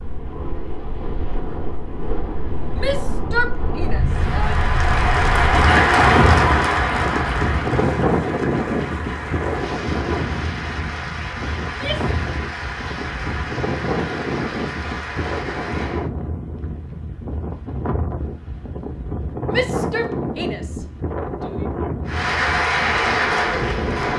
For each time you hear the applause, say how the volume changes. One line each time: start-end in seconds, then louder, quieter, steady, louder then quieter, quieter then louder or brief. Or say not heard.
4.0-16.1 quieter
22.1-24.1 brief.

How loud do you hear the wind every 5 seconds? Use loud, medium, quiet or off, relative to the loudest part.
medium, loud, medium, medium, medium.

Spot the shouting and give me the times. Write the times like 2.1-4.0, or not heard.
2.8-4.7, 11.7-12.1, 19.5-21.6.